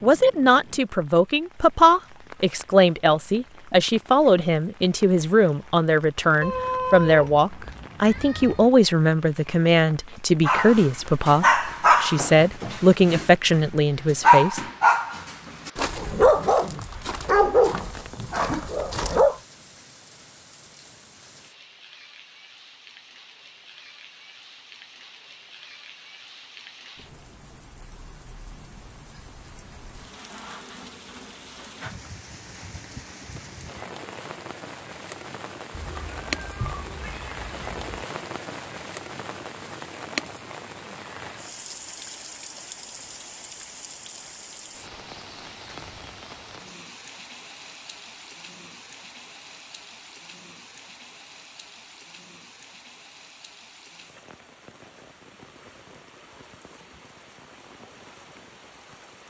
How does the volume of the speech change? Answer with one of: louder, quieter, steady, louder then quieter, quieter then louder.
steady.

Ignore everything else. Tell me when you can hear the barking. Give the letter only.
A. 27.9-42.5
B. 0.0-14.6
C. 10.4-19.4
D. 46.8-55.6
C.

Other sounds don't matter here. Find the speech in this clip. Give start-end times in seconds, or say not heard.
0.0-14.6.